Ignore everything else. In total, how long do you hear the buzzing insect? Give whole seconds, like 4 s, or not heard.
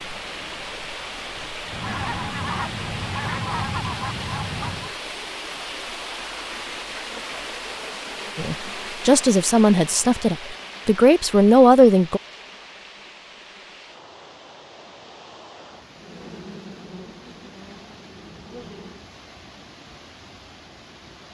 3 s.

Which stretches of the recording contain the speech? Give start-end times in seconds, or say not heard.
8.3-12.2.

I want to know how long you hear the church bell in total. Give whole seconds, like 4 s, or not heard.
not heard.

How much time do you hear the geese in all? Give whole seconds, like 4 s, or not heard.
3 s.